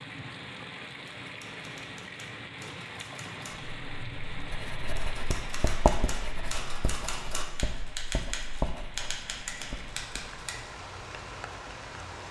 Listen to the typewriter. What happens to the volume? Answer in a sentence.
The loudness of the typewriter goes up.